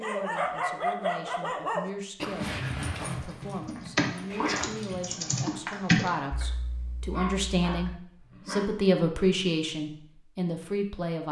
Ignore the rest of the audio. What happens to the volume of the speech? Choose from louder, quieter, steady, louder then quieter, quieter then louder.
louder.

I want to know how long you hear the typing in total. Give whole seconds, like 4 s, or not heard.
5 s.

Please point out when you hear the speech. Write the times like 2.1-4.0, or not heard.
0.0-11.2.